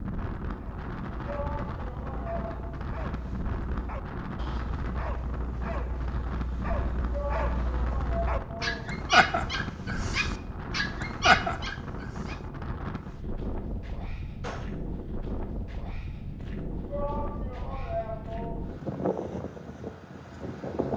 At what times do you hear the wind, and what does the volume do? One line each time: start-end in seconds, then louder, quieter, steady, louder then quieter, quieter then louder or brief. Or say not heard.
0.0-20.9 steady.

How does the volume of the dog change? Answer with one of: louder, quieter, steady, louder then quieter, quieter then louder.
louder.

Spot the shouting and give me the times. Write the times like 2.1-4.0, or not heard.
1.2-2.7, 7.1-8.9, 16.9-18.6.